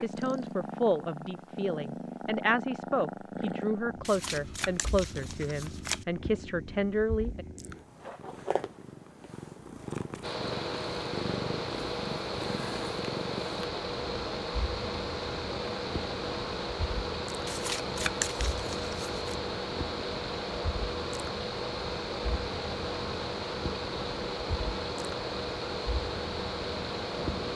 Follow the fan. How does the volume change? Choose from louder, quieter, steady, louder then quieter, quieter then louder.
steady.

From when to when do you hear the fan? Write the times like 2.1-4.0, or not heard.
10.2-27.5.